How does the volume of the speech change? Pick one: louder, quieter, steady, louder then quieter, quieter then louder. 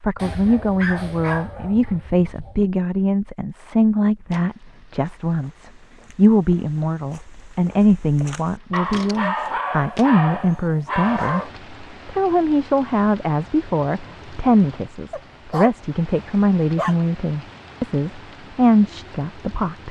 steady.